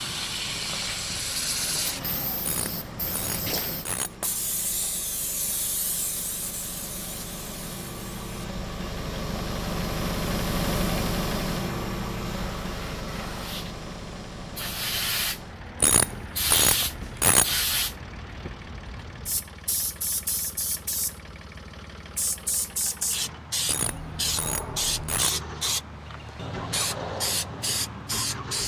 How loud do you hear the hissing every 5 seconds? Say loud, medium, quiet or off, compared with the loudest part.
loud, medium, medium, loud, loud, loud.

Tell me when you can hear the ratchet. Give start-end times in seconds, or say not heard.
2.4-4.2, 15.8-17.6, 23.6-25.4.